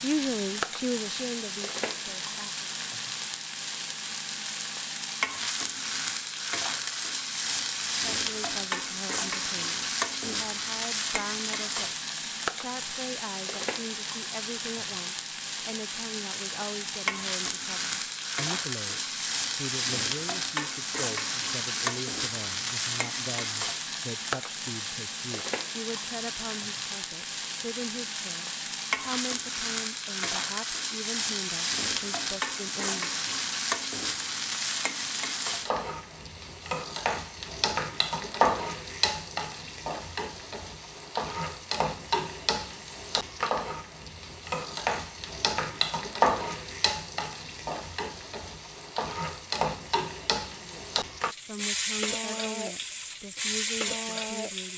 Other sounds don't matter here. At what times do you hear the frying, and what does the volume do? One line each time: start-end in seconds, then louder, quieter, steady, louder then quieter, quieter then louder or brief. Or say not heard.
0.0-54.7 steady.